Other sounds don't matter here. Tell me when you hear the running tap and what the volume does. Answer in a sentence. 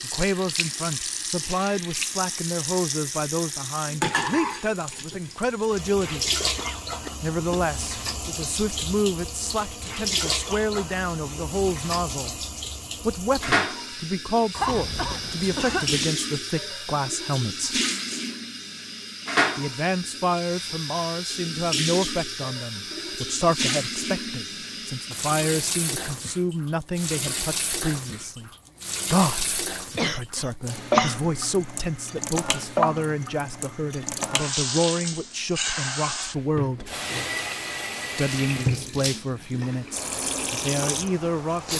The running tap can be heard from 0.0 to 41.7 s, at a steady volume.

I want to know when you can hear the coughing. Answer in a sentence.
The coughing can be heard from 6.5 to 7.7 s, from 14.5 to 16.1 s and from 29.9 to 31.2 s.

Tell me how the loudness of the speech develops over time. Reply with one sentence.
The volume of the speech stays about the same.